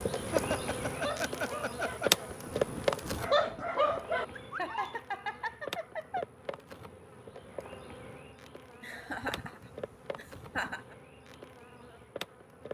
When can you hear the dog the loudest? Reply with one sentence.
The volume of the dog peaks at 3 seconds.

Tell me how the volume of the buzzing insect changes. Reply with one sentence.
The volume of the buzzing insect goes down.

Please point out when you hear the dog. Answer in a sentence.
You can hear the dog from 0.0 to 5.0 s.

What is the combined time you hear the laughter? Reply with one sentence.
You can hear the laughter for 6 seconds altogether.